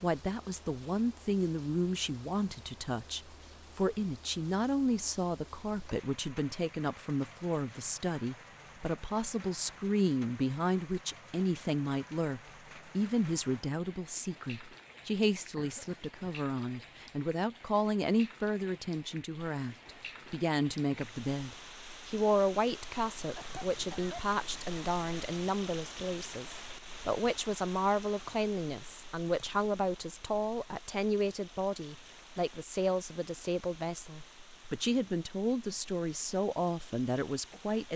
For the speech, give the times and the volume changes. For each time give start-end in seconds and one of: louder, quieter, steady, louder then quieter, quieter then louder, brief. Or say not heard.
0.0-37.9 steady.